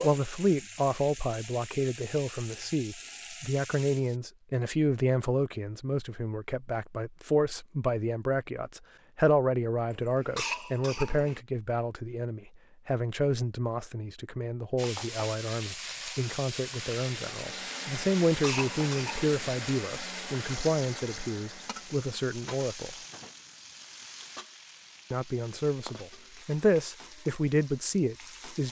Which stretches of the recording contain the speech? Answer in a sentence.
You can hear the speech from 0.0 to 22.9 s and from 25.1 to 28.6 s.